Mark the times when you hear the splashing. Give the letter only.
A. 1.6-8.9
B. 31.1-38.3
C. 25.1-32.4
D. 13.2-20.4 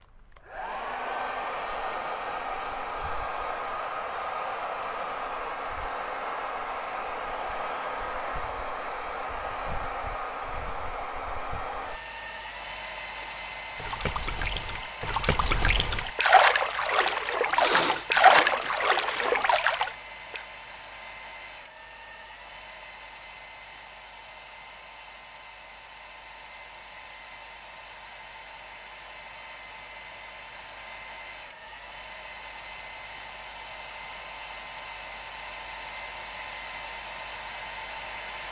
D.